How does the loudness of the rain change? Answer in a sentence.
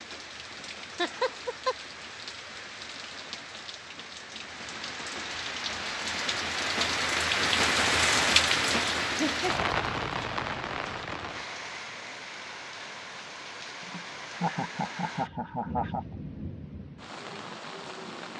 The loudness of the rain goes up, then down.